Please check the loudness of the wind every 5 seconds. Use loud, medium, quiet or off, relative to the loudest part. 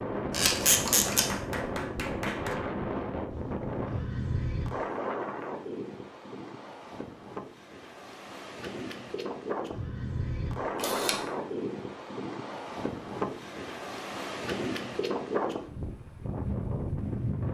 loud, medium, loud, loud.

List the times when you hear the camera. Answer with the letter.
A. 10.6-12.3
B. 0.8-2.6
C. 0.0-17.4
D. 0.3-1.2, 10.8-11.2
D.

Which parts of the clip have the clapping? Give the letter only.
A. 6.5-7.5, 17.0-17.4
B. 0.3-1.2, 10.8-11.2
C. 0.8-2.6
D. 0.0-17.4
C.